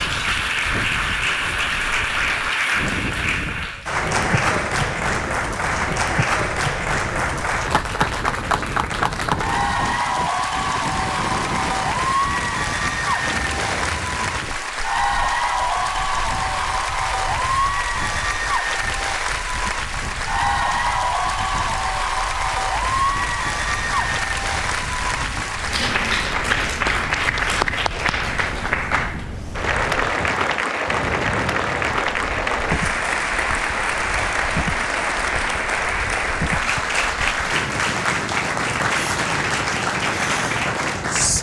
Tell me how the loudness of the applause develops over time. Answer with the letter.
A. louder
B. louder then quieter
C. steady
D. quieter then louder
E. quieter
C.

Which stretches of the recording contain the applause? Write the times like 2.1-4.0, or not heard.
0.0-41.3.